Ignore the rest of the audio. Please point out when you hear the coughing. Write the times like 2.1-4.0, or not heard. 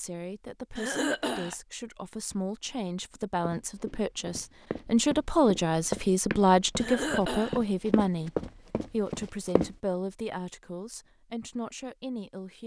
0.8-1.6, 6.8-7.6.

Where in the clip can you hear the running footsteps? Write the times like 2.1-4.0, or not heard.
3.5-9.7.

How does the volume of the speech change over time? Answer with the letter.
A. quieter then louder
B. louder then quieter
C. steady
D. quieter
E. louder
B.